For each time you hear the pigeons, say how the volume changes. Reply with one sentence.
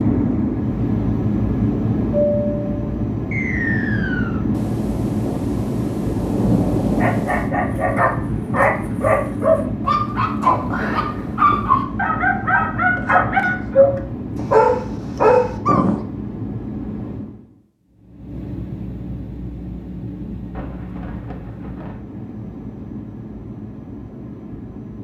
The pigeons can't be heard in this clip.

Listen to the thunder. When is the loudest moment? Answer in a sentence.
The volume of the thunder peaks at 7 seconds.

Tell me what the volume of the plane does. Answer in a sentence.
The volume of the plane goes down.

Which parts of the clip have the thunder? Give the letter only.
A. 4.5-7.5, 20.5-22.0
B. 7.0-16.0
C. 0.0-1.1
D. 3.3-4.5
A.